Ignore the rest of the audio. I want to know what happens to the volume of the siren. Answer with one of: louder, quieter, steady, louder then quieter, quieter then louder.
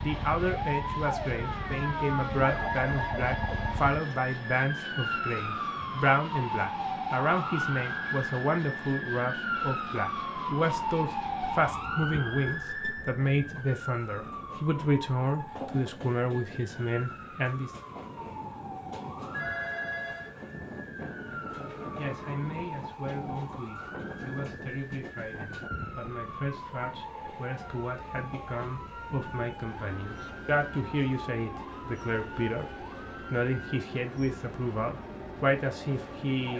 quieter.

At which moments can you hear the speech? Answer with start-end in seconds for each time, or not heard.
0.0-17.7, 21.9-36.5.